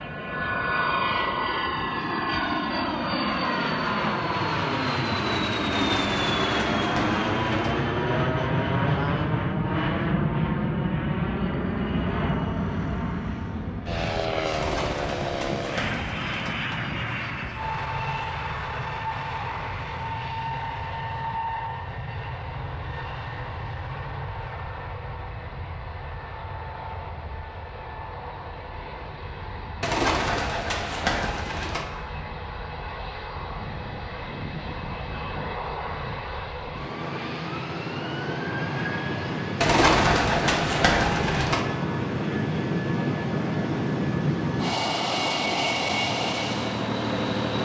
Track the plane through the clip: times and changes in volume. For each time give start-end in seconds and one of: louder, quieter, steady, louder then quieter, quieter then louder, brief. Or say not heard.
0.0-47.6 quieter then louder.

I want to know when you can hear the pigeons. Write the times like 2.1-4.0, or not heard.
5.7-7.8, 14.5-16.6, 29.8-31.9, 39.6-41.6.